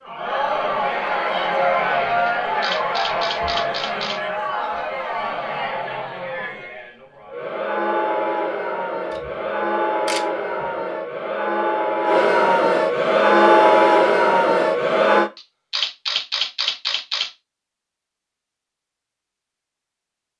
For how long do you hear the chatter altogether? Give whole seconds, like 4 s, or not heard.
15 s.